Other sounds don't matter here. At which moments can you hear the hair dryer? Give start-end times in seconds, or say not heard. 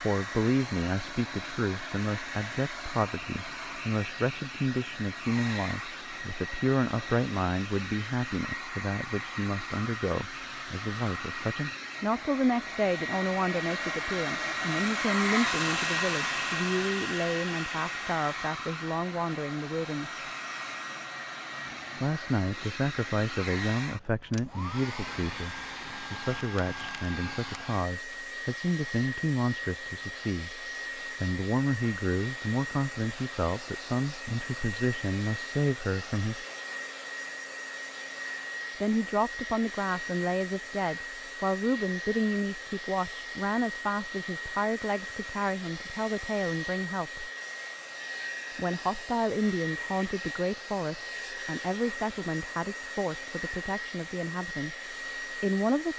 0.0-55.9.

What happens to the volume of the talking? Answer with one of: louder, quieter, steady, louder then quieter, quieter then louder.
steady.